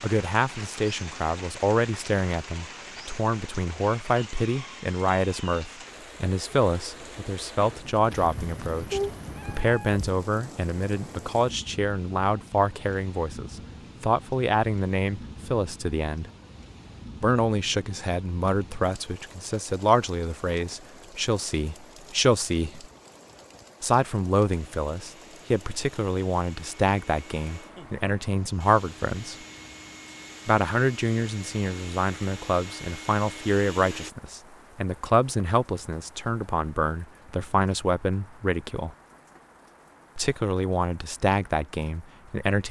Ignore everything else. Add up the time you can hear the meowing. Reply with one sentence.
You can hear the meowing for 2 seconds altogether.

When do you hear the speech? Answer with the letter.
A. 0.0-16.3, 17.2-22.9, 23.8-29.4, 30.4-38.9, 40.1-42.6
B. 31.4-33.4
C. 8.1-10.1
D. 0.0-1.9
A.